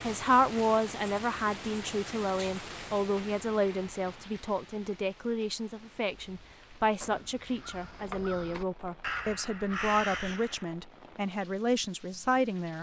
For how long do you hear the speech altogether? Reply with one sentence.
You can hear the speech for 13 seconds altogether.